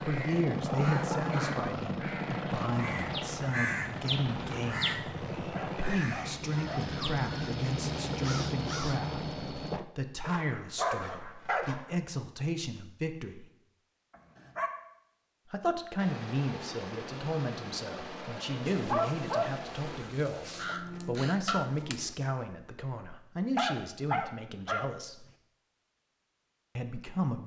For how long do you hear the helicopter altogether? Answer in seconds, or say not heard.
10 s.